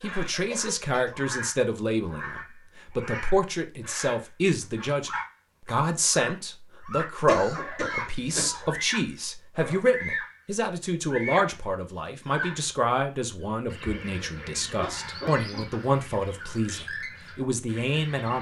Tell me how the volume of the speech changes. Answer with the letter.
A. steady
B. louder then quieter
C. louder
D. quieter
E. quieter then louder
A.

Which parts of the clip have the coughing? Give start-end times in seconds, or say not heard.
0.3-1.1, 7.2-8.7, 14.0-16.0.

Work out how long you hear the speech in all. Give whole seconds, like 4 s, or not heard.
18 s.